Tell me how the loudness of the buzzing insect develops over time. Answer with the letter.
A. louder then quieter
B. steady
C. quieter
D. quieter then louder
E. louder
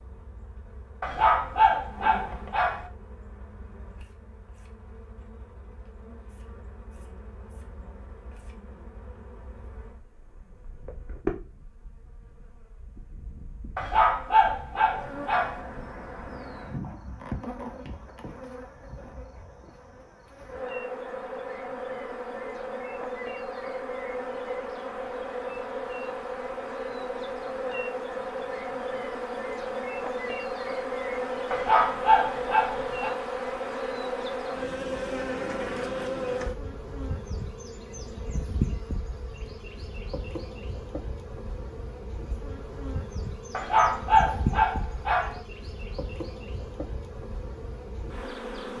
A.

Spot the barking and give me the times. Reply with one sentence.
You can hear the barking from 1.0 to 2.9 s, from 13.8 to 15.6 s, from 31.5 to 33.1 s and from 43.5 to 45.4 s.